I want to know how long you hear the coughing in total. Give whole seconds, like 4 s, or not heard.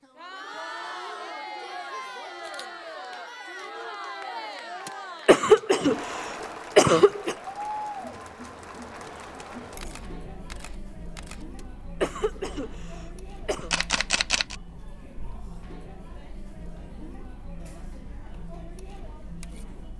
5 s.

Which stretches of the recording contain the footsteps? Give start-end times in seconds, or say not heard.
not heard.